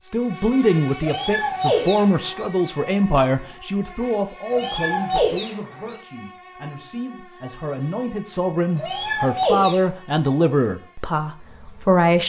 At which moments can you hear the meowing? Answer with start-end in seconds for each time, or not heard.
1.0-2.5, 4.5-6.0, 8.8-9.8.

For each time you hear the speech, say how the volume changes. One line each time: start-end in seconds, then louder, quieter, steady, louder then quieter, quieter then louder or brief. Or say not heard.
0.0-12.2 quieter then louder.